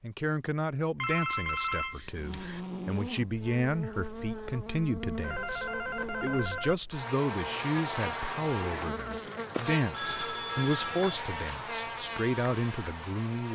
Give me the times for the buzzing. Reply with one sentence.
You can hear the buzzing from 2.0 to 13.5 s.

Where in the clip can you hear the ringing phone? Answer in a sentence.
The ringing phone can be heard from 0.9 to 2.6 s, from 5.2 to 6.8 s and from 9.9 to 11.2 s.